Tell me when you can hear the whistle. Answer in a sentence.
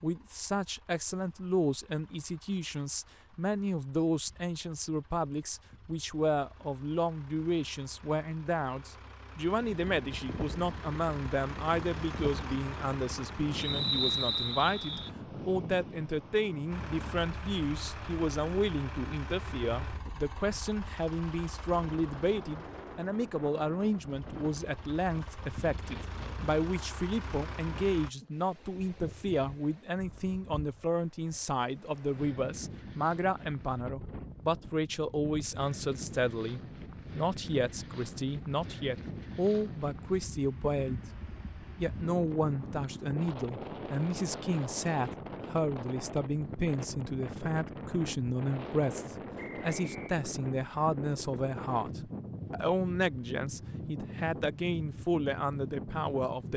The whistle can be heard from 13.6 to 15.1 s and from 49.4 to 50.0 s.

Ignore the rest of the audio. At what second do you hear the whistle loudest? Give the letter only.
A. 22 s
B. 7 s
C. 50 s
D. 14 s
D.